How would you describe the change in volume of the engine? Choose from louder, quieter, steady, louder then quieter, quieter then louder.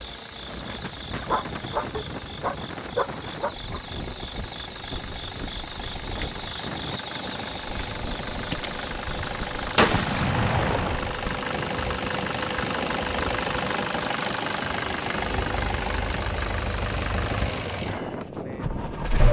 louder.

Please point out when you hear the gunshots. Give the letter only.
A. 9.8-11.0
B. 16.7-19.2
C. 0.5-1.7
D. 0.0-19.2
A.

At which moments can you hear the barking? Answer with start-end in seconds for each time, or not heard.
1.2-3.8.